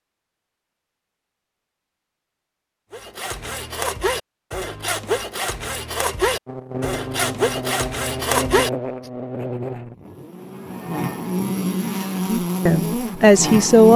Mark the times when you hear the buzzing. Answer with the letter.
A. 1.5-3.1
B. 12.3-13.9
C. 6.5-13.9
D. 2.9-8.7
C.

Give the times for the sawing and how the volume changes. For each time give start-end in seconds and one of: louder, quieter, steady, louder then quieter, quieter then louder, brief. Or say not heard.
2.9-8.7 steady.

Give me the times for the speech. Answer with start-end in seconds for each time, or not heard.
12.3-13.9.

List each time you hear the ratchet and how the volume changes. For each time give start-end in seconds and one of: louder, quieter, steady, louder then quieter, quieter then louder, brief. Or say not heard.
not heard.